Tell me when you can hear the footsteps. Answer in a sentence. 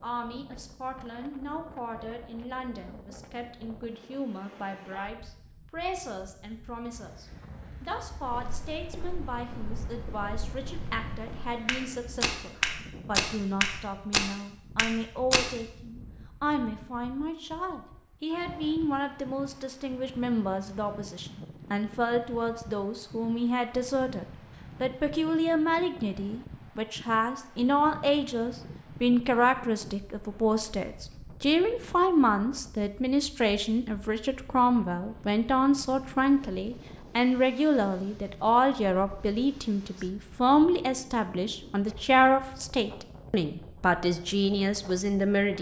You can hear the footsteps from 8.2 to 15.4 s.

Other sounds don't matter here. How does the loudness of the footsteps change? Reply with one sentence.
The loudness of the footsteps goes up.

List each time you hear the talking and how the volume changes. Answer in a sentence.
You can hear the talking from 0.0 to 45.5 s, getting louder.